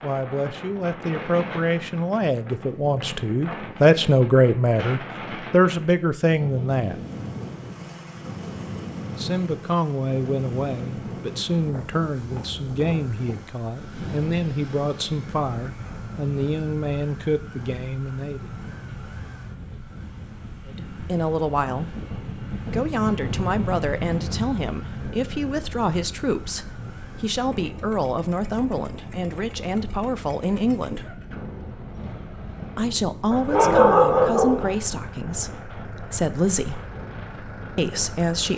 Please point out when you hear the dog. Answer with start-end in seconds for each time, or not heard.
33.3-34.8.